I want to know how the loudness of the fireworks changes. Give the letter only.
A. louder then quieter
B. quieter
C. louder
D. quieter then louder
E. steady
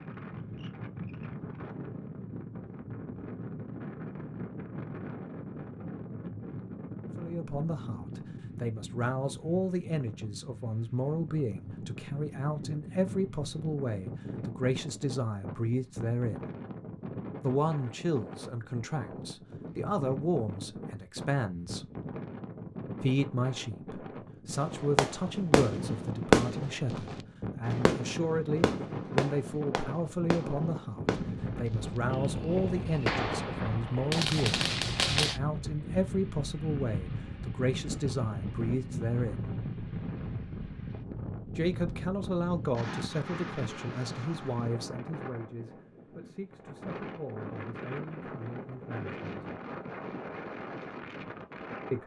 D.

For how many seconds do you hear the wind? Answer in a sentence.
The wind can be heard for 52 seconds in total.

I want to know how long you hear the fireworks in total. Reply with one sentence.
You can hear the fireworks for 11 seconds altogether.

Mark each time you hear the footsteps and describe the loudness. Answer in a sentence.
You can't hear the footsteps here.